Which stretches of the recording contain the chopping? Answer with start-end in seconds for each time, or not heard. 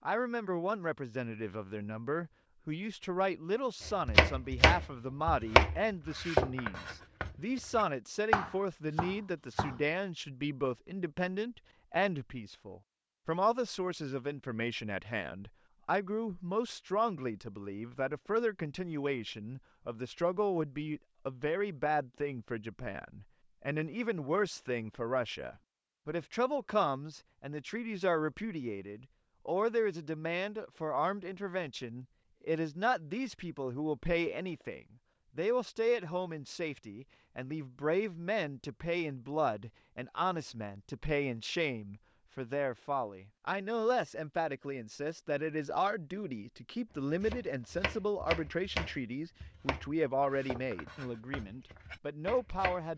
3.9-9.8, 47.2-52.8.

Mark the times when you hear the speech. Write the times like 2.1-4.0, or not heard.
0.1-52.9.